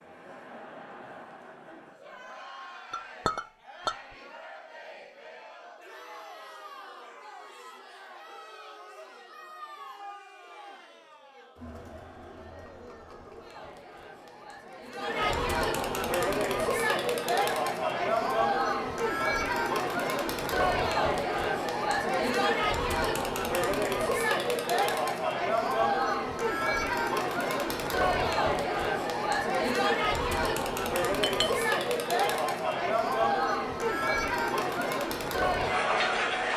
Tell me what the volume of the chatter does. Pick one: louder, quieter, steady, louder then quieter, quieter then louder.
louder.